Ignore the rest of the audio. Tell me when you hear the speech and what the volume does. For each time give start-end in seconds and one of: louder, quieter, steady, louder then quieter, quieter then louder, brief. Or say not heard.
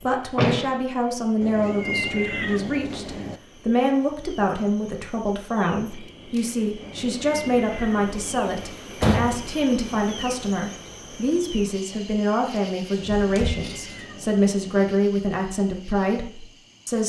0.0-17.0 steady.